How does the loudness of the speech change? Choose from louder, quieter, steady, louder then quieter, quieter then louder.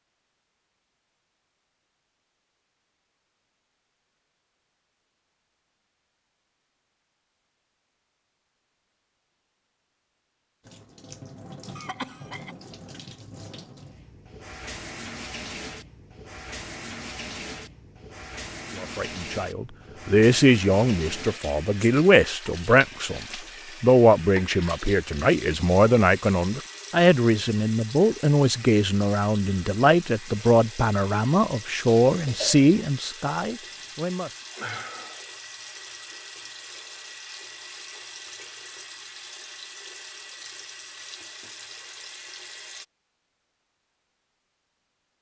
steady.